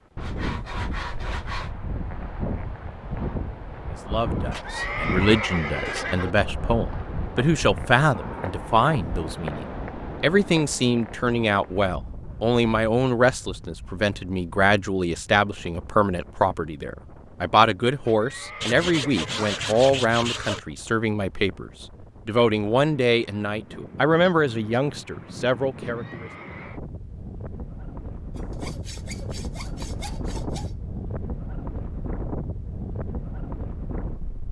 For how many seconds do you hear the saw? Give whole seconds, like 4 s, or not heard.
6 s.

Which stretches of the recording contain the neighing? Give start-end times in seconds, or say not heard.
4.5-6.3, 18.1-19.8, 25.8-26.8.